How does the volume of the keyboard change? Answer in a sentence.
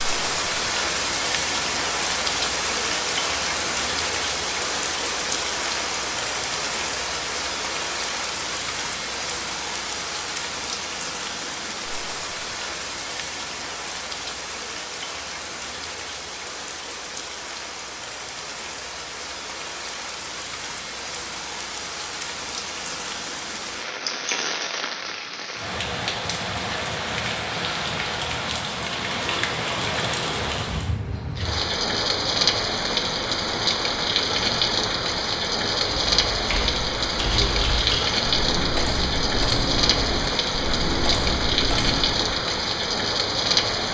The volume of the keyboard stays about the same.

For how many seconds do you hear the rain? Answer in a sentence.
The rain can be heard for 44 seconds in total.